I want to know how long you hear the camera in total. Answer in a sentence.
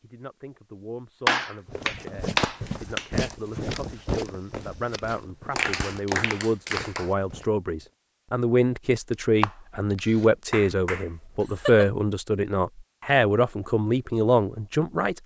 You can hear the camera for 3 seconds altogether.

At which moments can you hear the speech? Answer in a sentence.
You can hear the speech from 0.0 to 15.2 s.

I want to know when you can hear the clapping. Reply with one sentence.
The clapping can be heard from 1.2 to 3.0 s, from 5.5 to 7.1 s and from 10.5 to 11.9 s.